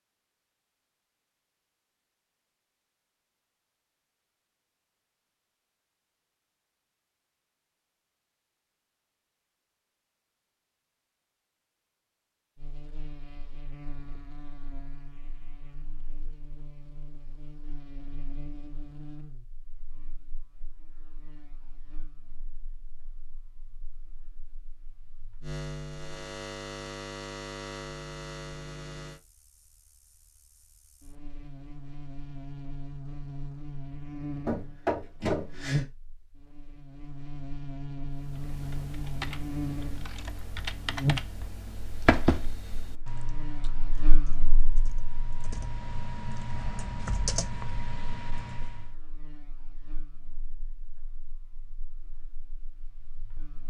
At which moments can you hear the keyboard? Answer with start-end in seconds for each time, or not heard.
38.1-49.0.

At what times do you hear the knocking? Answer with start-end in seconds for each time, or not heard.
34.5-35.9.